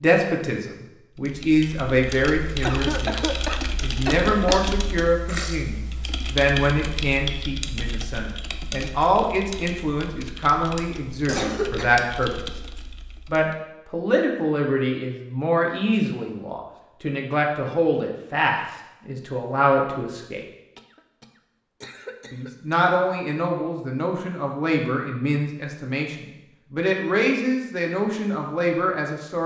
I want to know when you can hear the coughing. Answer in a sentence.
The coughing can be heard from 2.6 to 4.7 s, from 11.2 to 11.9 s and from 20.8 to 22.8 s.